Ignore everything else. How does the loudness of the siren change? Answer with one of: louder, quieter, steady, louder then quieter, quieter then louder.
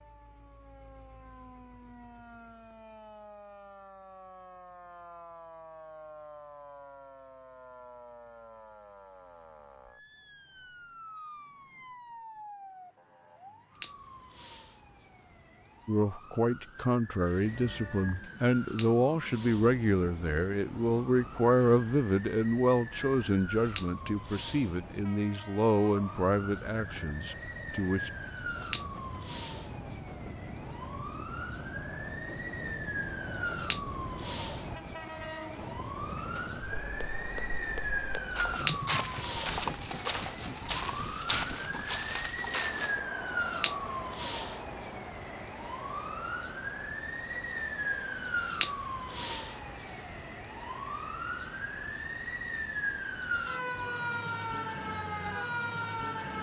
louder.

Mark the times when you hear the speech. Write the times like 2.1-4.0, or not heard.
15.8-28.1.